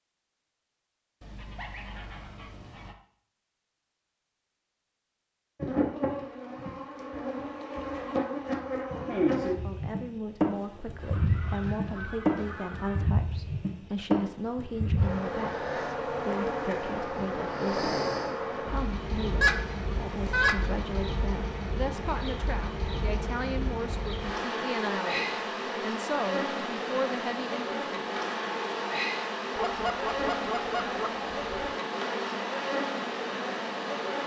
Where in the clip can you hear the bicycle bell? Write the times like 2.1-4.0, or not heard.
not heard.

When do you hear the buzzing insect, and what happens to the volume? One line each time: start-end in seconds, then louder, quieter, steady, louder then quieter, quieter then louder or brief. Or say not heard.
5.6-34.2 steady.